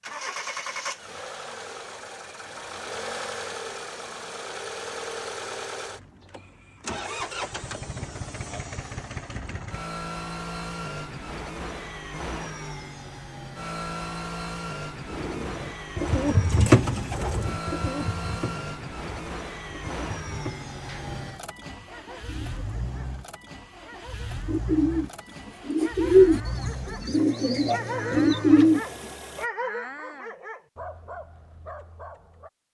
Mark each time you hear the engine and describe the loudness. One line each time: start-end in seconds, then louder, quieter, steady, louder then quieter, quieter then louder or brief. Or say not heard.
0.0-29.5 steady.